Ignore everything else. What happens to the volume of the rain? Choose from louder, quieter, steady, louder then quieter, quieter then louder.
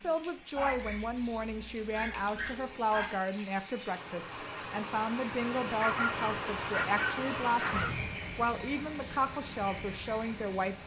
louder then quieter.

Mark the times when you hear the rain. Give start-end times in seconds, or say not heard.
0.0-10.8.